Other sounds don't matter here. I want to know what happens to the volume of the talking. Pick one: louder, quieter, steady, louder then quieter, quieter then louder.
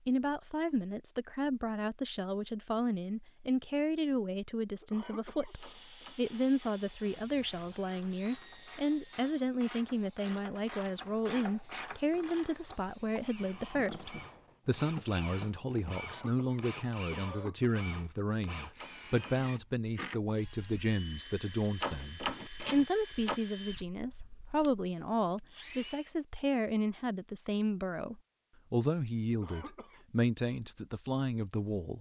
steady.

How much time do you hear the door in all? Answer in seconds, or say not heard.
3 s.